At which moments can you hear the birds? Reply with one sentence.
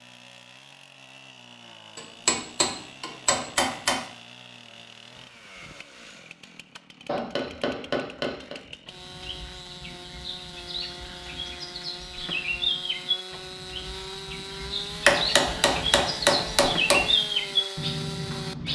You can hear the birds from 8.8 to 18.7 s.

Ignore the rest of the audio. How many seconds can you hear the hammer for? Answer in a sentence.
You can hear the hammer for 6 seconds altogether.